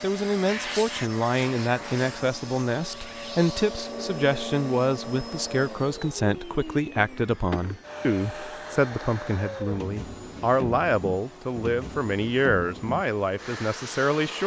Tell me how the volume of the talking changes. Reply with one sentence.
The volume of the talking stays about the same.